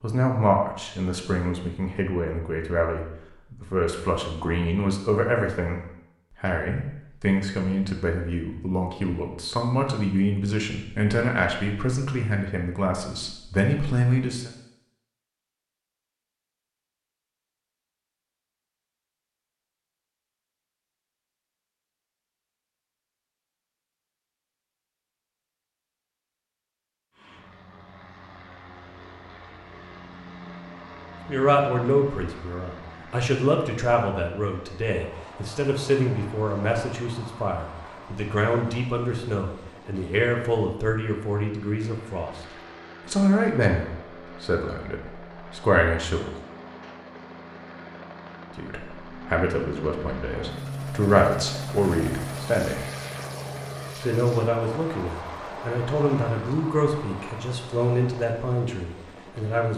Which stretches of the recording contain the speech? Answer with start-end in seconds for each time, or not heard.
0.0-5.8, 6.4-14.5, 31.2-42.5, 43.0-46.3, 48.5-52.9, 54.0-59.7.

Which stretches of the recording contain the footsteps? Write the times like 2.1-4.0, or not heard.
not heard.